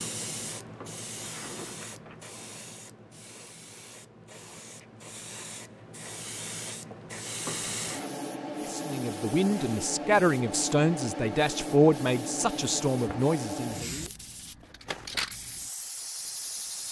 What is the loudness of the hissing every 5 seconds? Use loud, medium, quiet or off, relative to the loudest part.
medium, loud, loud, loud.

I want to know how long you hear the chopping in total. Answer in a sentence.
The chopping can't be heard in this clip.